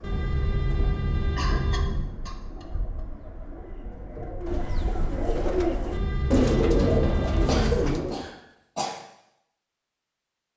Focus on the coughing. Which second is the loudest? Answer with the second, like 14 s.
8 s.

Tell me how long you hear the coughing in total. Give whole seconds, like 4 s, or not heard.
3 s.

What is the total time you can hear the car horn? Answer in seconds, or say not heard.
4 s.